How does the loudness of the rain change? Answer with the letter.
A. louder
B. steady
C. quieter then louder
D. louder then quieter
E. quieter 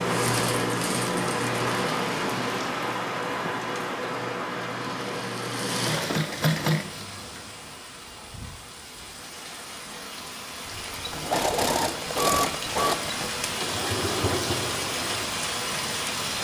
C.